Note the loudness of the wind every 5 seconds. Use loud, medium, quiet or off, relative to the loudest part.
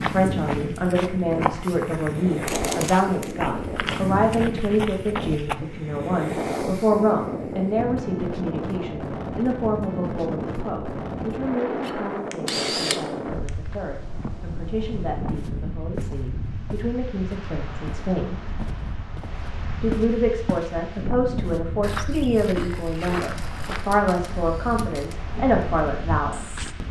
loud, loud, loud, medium, medium, medium.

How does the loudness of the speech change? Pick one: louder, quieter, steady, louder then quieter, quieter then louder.
quieter then louder.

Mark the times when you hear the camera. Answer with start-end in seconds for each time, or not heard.
2.5-3.4, 11.8-13.5, 23.2-25.1.